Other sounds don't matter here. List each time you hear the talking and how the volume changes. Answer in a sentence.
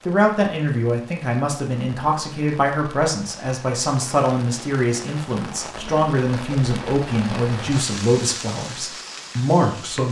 You can hear the talking from 0.1 to 10.0 s, at a steady volume.